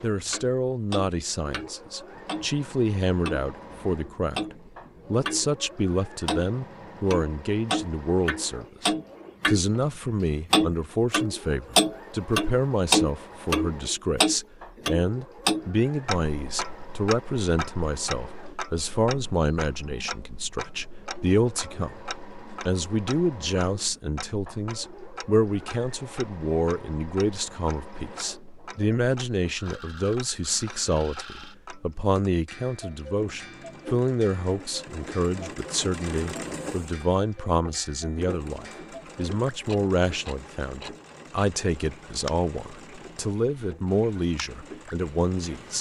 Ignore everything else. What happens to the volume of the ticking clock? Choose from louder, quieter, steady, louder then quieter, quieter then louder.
quieter.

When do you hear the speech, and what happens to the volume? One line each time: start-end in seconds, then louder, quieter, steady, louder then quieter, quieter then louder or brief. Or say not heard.
0.0-21.9 steady
22.6-45.7 steady.